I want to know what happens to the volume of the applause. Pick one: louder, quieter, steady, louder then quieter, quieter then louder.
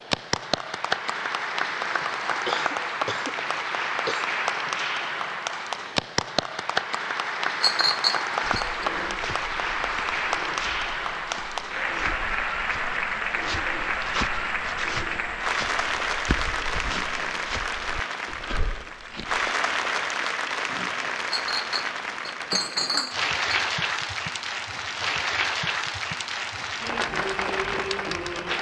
steady.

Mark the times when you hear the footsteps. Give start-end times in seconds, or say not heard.
8.4-19.5.